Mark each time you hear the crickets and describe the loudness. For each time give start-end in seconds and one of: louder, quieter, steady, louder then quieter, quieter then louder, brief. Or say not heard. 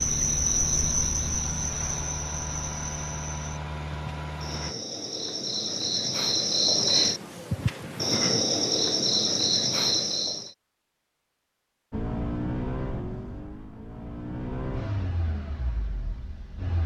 0.0-10.5 quieter then louder.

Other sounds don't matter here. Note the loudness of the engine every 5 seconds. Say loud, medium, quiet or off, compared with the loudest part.
loud, off, loud, medium.